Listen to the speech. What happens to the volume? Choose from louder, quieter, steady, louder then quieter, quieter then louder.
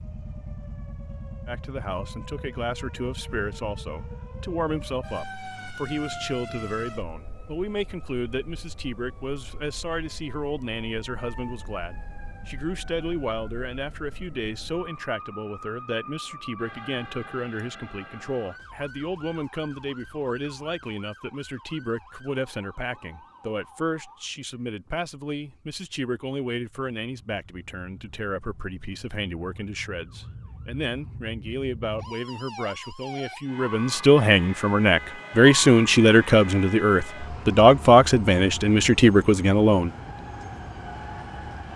louder.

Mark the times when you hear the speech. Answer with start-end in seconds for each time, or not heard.
1.4-39.9.